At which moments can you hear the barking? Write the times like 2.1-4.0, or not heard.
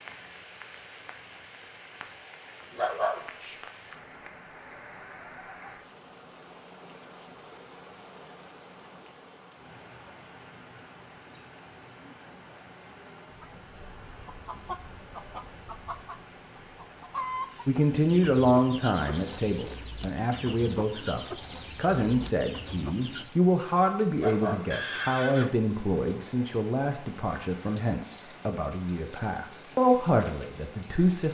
2.8-3.6, 24.1-25.0.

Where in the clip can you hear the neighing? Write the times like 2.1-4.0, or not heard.
24.7-25.6.